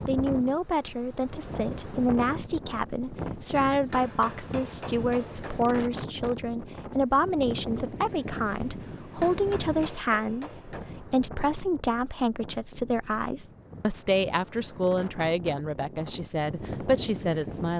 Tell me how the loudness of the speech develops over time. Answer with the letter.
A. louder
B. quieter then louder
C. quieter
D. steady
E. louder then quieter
D.